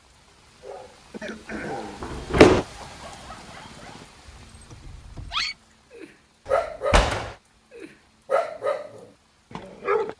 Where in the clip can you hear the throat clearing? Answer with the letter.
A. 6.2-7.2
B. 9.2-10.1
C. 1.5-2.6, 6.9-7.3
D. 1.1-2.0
D.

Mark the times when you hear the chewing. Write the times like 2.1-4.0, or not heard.
not heard.